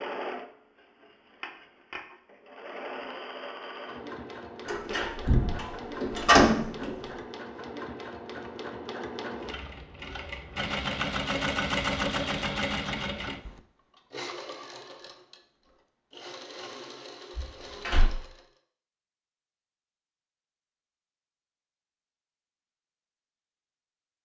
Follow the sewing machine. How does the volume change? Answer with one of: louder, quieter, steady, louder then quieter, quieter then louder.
louder then quieter.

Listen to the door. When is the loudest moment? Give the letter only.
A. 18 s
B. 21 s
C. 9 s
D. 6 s
D.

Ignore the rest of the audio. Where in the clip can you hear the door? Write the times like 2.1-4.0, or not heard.
4.7-6.9, 17.4-18.1.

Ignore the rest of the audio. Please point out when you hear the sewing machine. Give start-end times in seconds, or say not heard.
0.0-18.5.